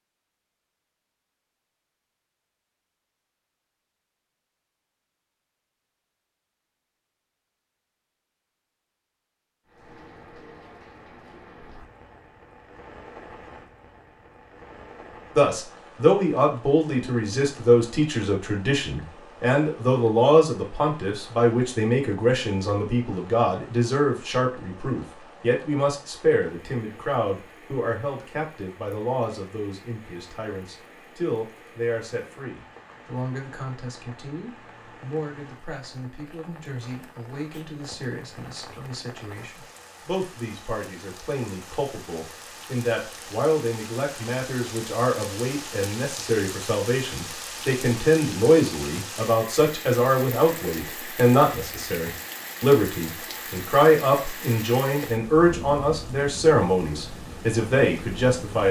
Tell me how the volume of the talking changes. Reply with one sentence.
The loudness of the talking goes down, then up.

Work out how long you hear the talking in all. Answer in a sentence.
The talking can be heard for 43 seconds in total.